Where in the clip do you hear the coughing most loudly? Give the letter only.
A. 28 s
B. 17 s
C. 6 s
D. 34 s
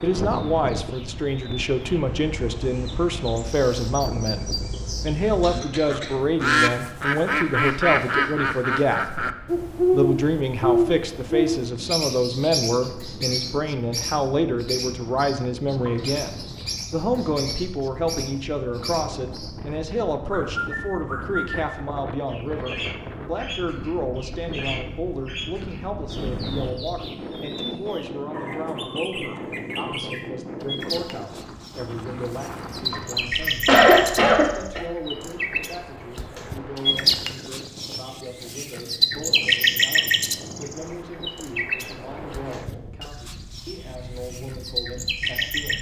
D.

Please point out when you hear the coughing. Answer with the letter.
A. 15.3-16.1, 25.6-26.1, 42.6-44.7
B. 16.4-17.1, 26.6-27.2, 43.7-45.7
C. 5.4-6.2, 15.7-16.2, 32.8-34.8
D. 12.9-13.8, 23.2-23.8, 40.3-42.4
C.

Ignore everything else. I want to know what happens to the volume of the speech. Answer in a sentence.
The volume of the speech goes down.